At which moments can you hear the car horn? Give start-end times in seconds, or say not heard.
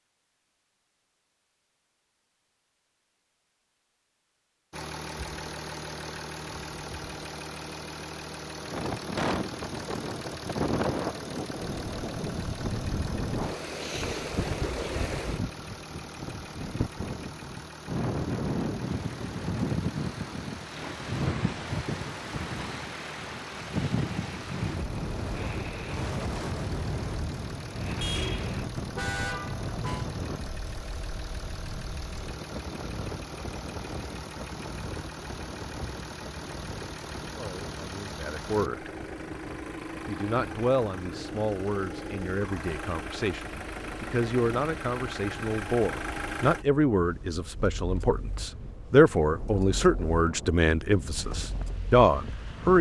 28.0-30.1.